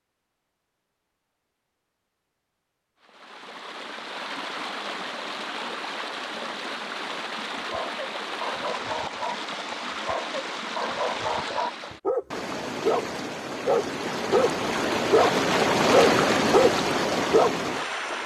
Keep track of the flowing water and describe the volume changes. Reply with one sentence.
The loudness of the flowing water goes up.